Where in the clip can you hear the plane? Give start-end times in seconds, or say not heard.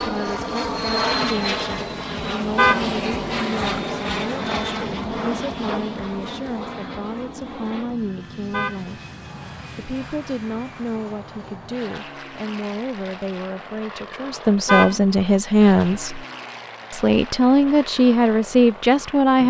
0.0-19.4.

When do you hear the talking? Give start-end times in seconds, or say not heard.
0.0-9.0, 9.8-16.2, 16.9-19.4.